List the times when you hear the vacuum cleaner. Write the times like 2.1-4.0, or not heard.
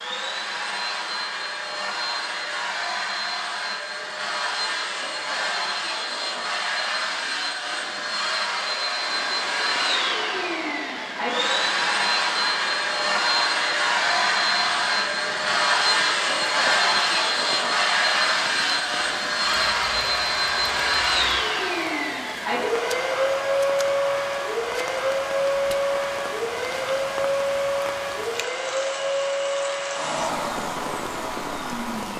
0.0-32.1.